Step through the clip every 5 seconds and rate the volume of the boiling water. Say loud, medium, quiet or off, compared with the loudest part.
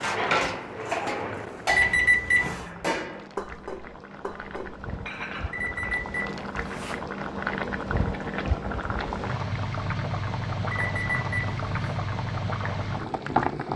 quiet, loud, loud.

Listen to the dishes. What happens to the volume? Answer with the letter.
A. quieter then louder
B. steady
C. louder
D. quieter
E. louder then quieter
D.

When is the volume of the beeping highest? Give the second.
2 s.